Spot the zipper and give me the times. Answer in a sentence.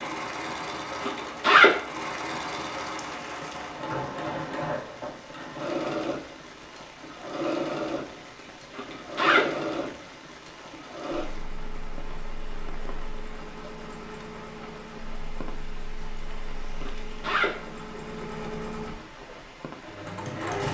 You can hear the zipper from 1.0 to 1.7 s, from 8.7 to 9.7 s and from 16.8 to 18.4 s.